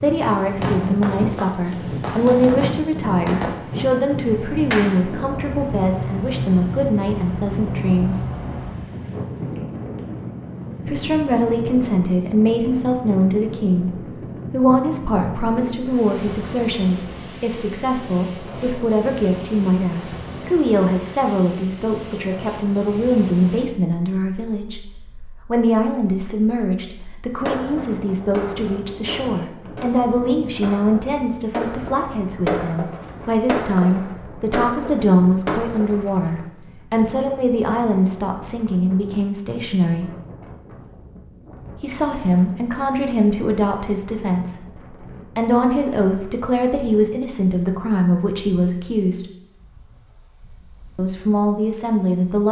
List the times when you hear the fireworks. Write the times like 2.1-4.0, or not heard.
0.6-8.8, 27.4-36.0.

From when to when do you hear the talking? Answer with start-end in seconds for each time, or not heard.
0.0-8.2, 10.8-24.8, 25.4-40.1, 41.8-49.3, 51.0-52.4.